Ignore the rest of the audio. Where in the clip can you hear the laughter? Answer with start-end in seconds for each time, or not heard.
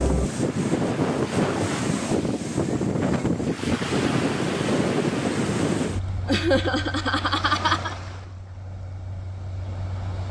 6.2-8.0.